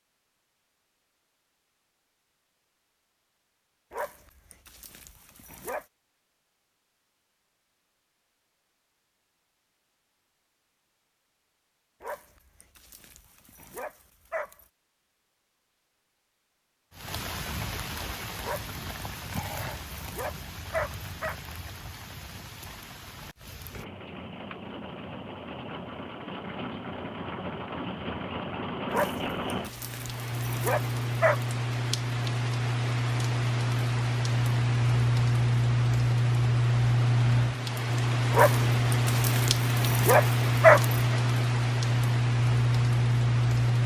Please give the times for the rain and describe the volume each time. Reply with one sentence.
You can hear the rain from 16.9 to 43.8 s, getting louder.